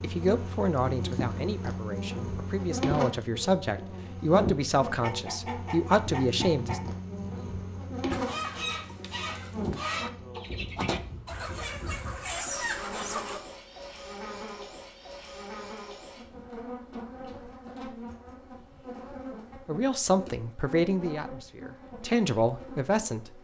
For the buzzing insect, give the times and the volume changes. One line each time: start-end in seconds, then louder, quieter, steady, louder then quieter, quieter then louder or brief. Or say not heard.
0.0-23.3 quieter.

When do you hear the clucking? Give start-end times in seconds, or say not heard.
4.8-13.4.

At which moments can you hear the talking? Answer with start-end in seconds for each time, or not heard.
0.0-6.8, 19.6-23.3.